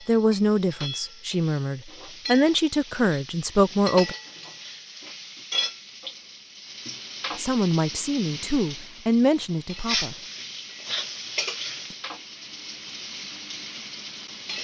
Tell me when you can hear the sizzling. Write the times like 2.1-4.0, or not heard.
0.0-14.5.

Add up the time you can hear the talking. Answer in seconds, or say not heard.
7 s.